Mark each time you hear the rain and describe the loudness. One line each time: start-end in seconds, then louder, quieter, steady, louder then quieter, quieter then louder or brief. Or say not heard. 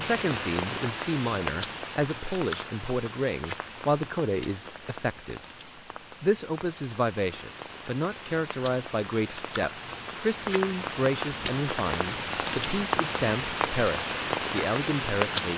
0.0-15.5 quieter then louder.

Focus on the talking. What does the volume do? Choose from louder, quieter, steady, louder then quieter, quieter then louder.
steady.